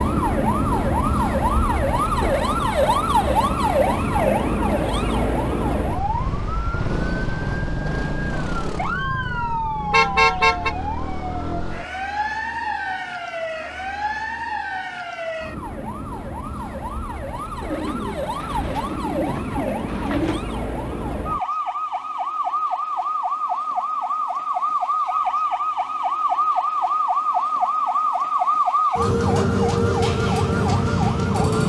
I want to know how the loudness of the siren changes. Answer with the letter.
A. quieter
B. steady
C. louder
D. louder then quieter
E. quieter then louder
E.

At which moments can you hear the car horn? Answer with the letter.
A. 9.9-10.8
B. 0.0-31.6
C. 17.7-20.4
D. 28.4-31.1
A.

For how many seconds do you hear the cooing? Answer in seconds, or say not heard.
3 s.